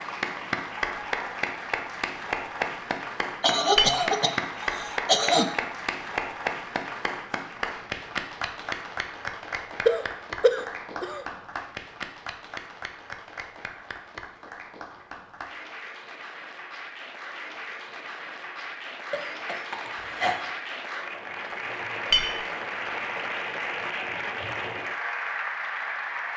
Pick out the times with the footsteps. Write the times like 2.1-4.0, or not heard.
not heard.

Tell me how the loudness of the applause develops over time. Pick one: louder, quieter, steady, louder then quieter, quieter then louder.
quieter then louder.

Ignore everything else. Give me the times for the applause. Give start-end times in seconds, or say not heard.
0.0-26.3.